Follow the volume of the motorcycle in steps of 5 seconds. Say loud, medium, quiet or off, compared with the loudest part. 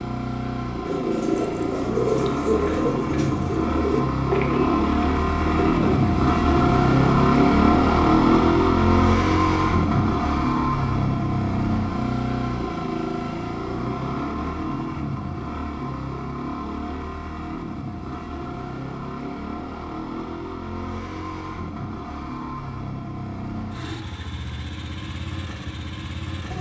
medium, loud, medium, quiet, quiet, quiet.